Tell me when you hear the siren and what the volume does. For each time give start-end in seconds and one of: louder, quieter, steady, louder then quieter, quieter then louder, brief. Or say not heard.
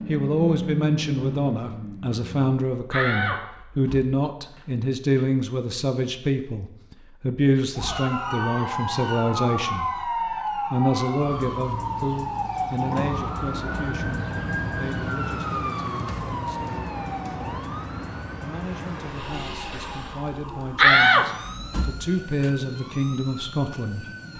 7.8-24.3 quieter.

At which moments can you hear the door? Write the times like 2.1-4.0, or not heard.
2.9-4.6, 20.8-22.5.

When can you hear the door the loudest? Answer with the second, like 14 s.
21 s.